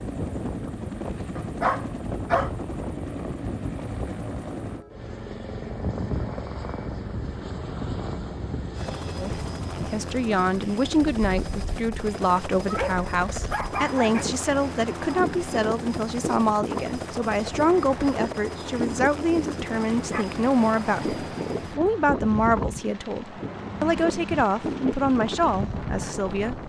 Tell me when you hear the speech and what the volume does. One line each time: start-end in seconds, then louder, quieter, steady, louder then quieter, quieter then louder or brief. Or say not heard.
9.2-26.6 steady.